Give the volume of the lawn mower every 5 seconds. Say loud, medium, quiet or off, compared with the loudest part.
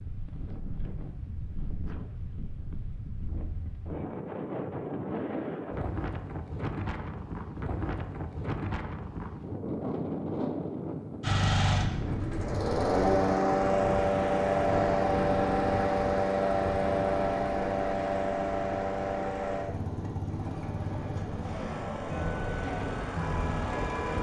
off, off, loud, loud, medium.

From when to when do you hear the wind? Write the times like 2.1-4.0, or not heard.
0.0-24.1.